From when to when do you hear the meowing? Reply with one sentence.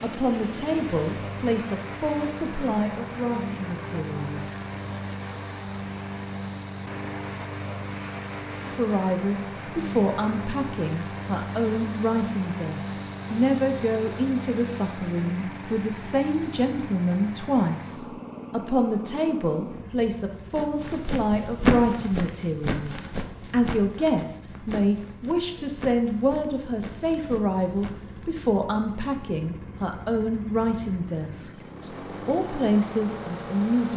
The meowing can't be heard in this clip.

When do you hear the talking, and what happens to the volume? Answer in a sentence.
The talking can be heard from 0.0 to 4.6 s, getting quieter; and from 8.6 to 33.9 s, at a steady volume.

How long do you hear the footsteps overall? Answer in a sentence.
The footsteps can be heard for 8 seconds in total.